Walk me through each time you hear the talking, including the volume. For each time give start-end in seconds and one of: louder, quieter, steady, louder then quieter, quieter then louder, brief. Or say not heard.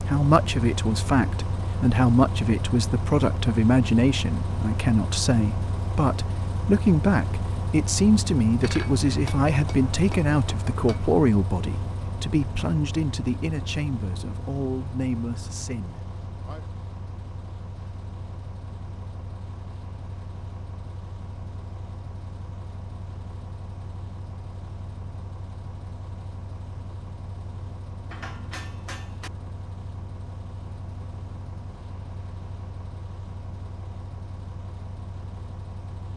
0.1-16.6 quieter.